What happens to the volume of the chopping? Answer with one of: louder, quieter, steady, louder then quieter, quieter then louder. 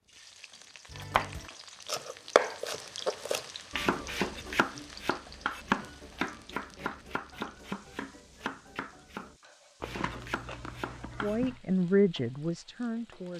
quieter.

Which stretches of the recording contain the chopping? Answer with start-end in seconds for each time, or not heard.
0.9-11.3.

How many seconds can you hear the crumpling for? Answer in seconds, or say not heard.
2 s.